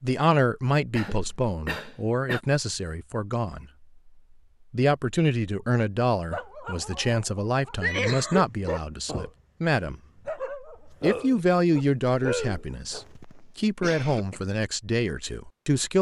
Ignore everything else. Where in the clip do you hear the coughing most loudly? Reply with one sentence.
The loudest moment of the coughing is at 8 seconds.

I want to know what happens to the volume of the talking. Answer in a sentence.
The loudness of the talking stays about the same.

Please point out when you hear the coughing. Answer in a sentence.
The coughing can be heard from 0.9 to 2.4 s, from 7.8 to 8.7 s and from 12.9 to 14.4 s.